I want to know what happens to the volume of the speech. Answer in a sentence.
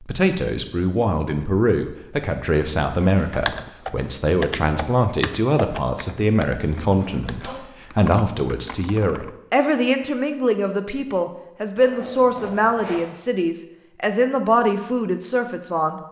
The loudness of the speech stays about the same.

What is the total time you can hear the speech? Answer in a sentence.
You can hear the speech for 16 seconds altogether.